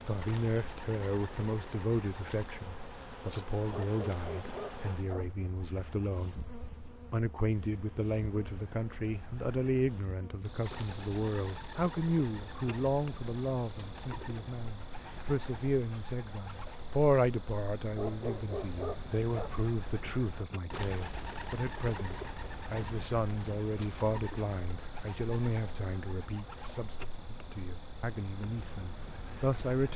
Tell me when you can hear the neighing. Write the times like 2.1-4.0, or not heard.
not heard.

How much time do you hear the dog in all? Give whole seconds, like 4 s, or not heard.
3 s.